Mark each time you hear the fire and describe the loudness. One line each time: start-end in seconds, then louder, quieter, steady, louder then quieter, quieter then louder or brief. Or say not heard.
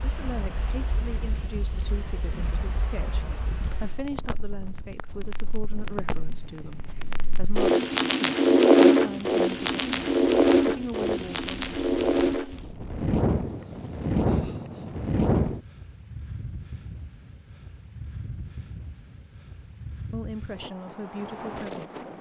0.0-15.6 louder then quieter.